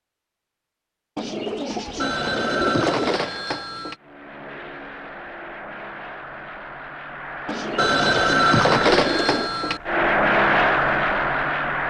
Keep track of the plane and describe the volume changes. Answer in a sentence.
The volume of the plane goes up.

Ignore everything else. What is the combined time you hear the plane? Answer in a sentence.
You can hear the plane for 8 seconds altogether.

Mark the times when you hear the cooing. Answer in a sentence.
The cooing can be heard from 1.1 to 3.2 s and from 7.5 to 9.5 s.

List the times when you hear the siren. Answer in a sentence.
You can't hear the siren here.